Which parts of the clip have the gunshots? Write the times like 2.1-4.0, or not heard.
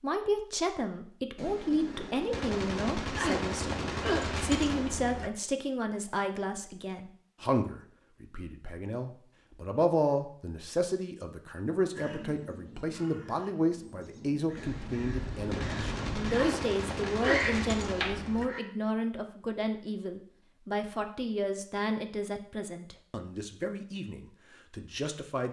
1.4-5.3, 14.6-18.5.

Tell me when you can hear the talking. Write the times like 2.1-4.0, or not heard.
0.0-25.4.